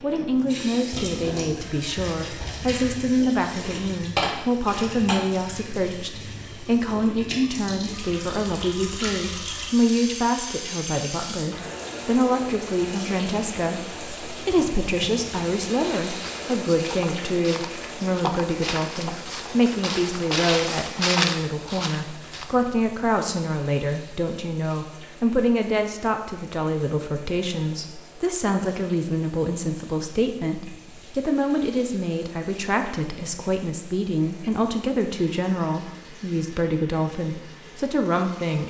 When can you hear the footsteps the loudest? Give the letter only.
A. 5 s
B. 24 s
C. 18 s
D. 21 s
D.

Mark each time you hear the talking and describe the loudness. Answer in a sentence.
You can hear the talking from 0.0 to 38.6 s, at a steady volume.